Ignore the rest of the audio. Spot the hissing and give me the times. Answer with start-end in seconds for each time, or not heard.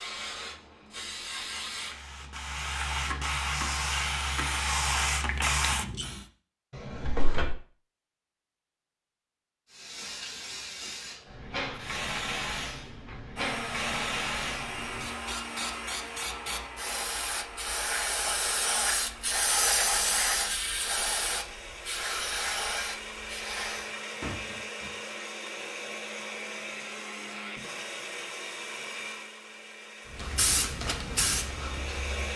0.0-6.2, 9.7-23.9, 30.1-32.3.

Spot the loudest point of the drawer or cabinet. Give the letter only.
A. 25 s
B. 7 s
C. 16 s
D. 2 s
B.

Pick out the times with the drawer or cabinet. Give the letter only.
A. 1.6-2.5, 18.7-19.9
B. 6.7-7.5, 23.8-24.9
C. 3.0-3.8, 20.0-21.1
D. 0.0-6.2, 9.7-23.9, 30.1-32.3
B.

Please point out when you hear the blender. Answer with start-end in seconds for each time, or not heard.
13.3-32.3.